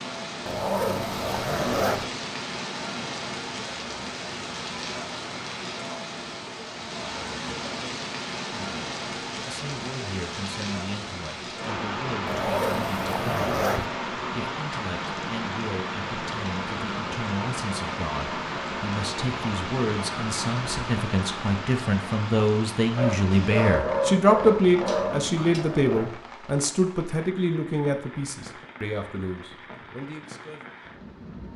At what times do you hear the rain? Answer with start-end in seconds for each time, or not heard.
0.0-31.5.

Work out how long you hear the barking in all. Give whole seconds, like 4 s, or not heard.
3 s.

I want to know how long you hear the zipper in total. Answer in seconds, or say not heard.
5 s.